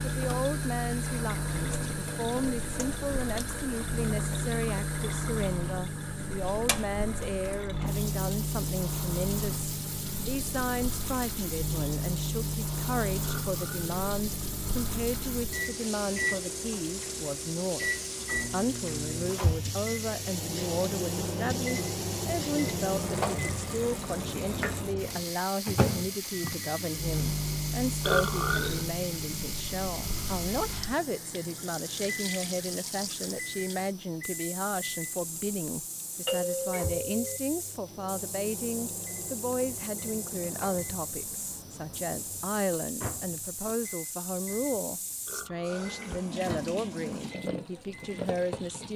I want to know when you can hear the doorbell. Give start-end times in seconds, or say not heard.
36.2-37.4.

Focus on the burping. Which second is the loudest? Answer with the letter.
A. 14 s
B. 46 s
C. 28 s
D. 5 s
C.